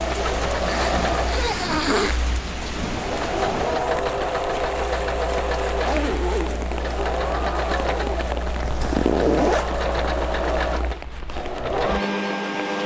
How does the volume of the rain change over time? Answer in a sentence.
The volume of the rain goes down.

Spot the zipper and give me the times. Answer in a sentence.
You can hear the zipper from 0.7 to 2.2 s, from 5.8 to 6.7 s and from 8.6 to 9.8 s.